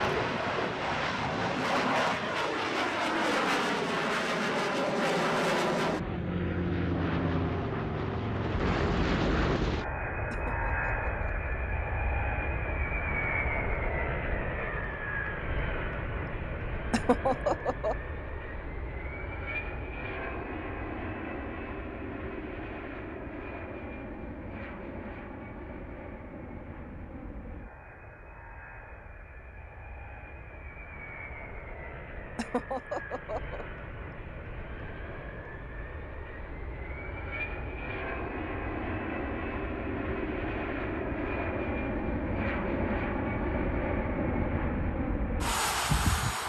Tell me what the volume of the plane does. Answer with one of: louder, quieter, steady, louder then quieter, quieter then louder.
quieter then louder.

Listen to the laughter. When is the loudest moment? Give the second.
17 s.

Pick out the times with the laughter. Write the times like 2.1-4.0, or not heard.
10.3-11.5, 16.9-17.9, 32.4-33.6.